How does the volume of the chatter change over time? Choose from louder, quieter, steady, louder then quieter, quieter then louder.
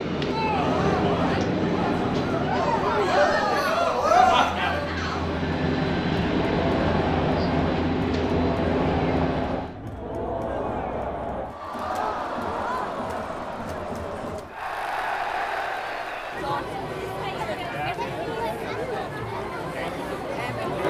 quieter.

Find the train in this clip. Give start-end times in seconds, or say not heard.
0.0-9.8.